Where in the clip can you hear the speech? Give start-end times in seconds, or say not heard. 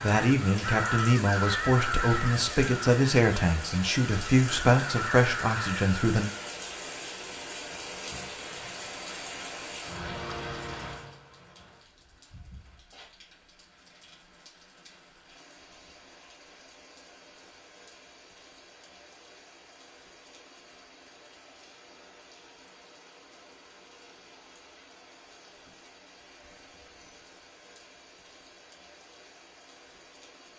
0.0-6.3.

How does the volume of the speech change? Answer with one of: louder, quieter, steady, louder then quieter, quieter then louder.
steady.